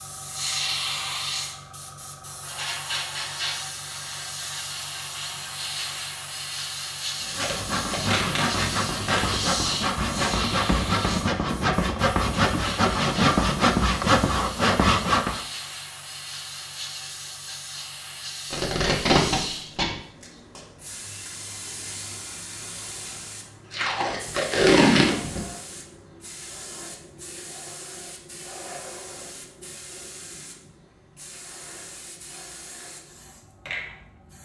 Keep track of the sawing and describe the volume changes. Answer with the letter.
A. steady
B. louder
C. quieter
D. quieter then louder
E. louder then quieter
B.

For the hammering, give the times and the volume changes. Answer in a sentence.
You can't hear the hammering here.